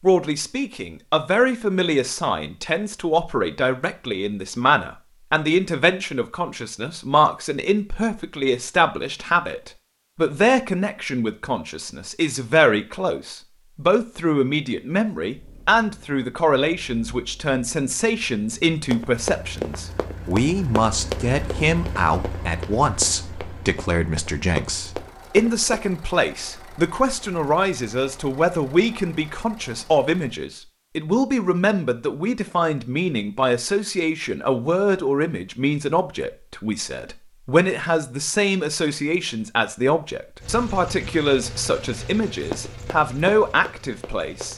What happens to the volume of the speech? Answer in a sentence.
The loudness of the speech stays about the same.